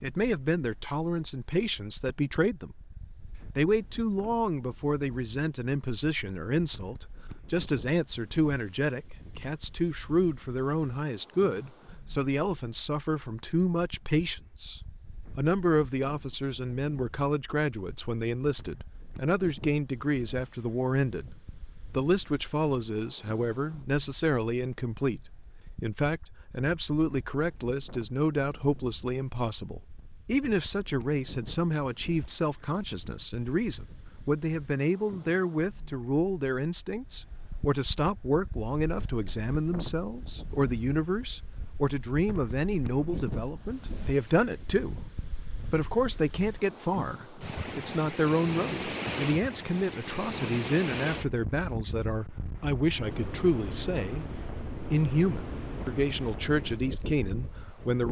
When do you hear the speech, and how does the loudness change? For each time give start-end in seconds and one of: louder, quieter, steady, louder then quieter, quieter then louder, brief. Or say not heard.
0.0-2.9 brief
3.5-58.0 steady.